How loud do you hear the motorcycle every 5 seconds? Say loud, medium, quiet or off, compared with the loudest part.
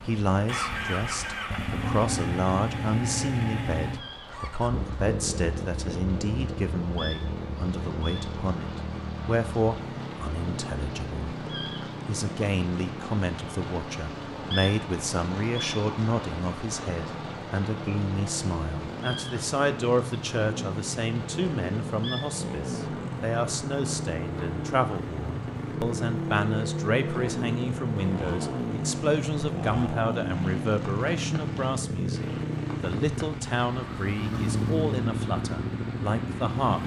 loud, medium, medium, medium, loud, loud, loud, loud.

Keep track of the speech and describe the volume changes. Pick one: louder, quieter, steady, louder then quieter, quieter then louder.
steady.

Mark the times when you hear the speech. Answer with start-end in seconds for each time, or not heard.
0.0-11.2, 12.1-36.8.